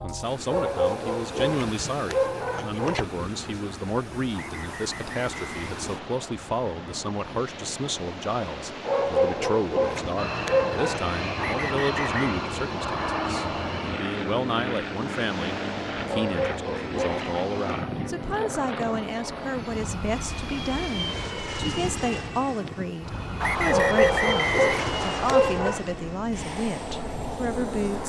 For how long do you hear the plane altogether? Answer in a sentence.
The plane can be heard for 18 seconds in total.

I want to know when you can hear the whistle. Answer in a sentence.
The whistle can be heard from 4.3 to 6.3 s, from 11.3 to 12.3 s and from 23.4 to 25.4 s.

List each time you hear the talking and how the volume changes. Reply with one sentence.
You can hear the talking from 0.0 to 28.0 s, at a steady volume.